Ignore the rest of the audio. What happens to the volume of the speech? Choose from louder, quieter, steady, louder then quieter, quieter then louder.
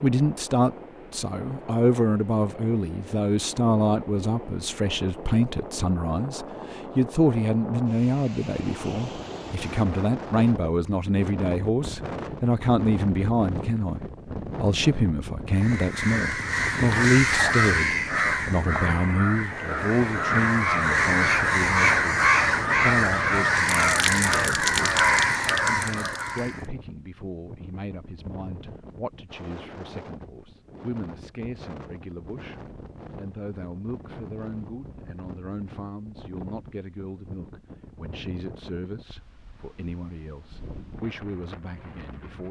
quieter.